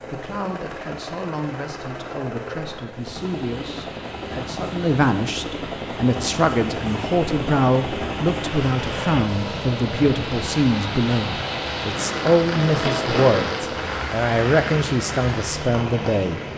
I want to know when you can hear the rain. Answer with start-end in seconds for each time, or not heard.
3.0-16.5.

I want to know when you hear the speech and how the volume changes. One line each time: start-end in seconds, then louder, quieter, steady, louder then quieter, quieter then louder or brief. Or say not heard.
0.1-16.4 louder.